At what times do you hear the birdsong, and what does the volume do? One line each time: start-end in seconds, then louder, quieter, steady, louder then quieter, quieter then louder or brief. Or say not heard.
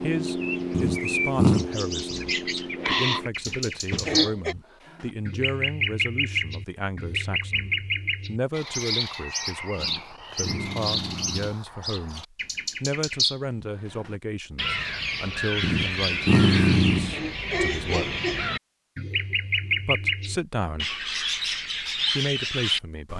0.0-23.1 steady.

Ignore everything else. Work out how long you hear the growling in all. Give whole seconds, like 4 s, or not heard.
4 s.